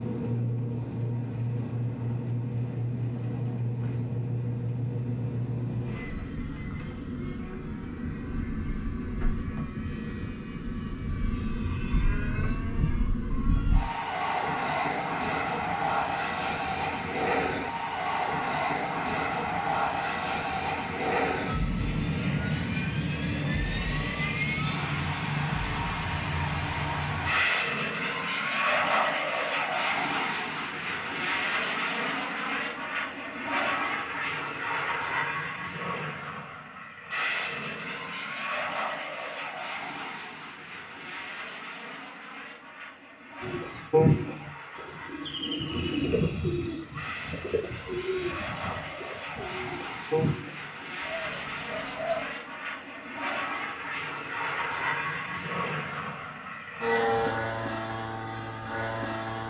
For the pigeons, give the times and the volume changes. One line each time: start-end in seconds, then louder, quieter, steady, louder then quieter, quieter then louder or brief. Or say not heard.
43.4-52.3 quieter.